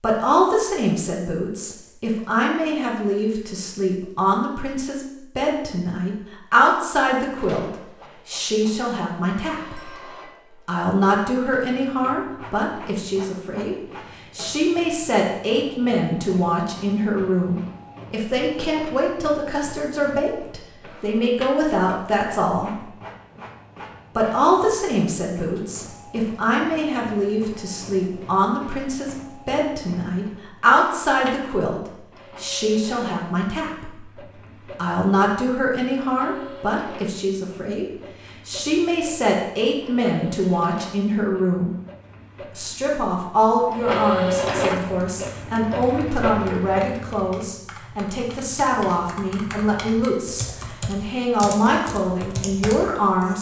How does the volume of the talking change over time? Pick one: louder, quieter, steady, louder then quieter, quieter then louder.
steady.